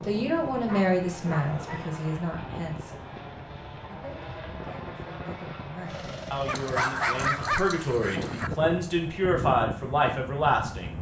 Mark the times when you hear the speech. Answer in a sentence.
The speech can be heard from 0.0 to 3.0 s and from 3.9 to 10.9 s.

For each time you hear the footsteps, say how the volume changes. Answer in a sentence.
The footsteps can't be heard in this clip.